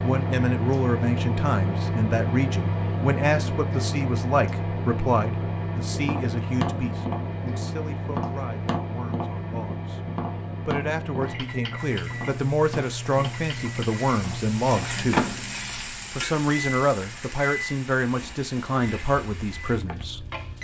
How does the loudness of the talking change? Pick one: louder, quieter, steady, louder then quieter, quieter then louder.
quieter then louder.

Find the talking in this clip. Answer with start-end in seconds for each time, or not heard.
0.0-10.0, 10.7-15.2, 16.1-20.2.